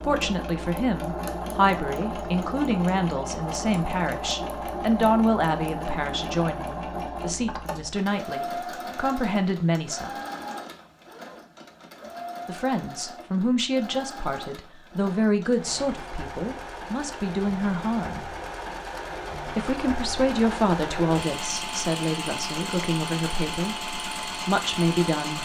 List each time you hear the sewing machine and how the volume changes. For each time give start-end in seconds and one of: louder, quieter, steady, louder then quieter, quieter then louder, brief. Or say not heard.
0.0-25.4 quieter then louder.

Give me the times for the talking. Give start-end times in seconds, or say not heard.
0.0-10.1, 12.4-18.2, 19.4-25.4.